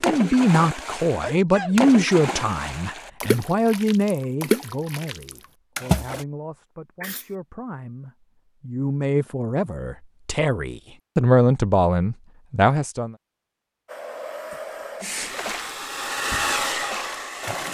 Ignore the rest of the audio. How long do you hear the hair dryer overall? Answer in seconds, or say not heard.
4 s.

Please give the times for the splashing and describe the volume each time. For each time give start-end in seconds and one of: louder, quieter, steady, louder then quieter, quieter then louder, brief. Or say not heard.
0.0-6.2 louder then quieter
15.2-17.6 brief.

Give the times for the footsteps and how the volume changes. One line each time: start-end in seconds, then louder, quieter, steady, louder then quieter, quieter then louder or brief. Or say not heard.
not heard.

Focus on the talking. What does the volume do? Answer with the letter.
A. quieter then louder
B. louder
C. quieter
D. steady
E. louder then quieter
A.